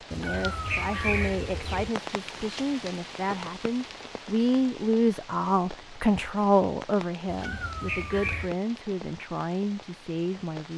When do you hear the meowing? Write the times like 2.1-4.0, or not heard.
0.1-1.9, 7.2-8.6.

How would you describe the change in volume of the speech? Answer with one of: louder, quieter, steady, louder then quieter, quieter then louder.
louder then quieter.